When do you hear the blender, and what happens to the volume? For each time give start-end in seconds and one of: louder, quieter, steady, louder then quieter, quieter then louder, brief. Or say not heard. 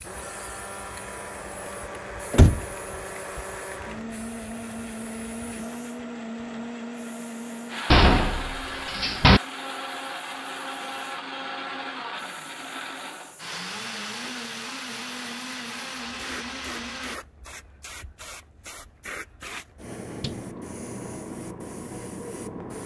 0.0-17.2 steady.